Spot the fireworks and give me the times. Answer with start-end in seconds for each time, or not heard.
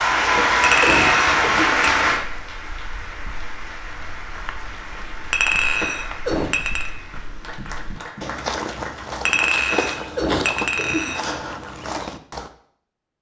not heard.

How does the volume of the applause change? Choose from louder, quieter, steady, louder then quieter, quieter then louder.
quieter.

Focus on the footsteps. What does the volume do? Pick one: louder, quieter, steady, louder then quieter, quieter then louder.
louder.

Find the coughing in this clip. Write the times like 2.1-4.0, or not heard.
0.3-1.8, 5.8-6.5, 9.7-11.1.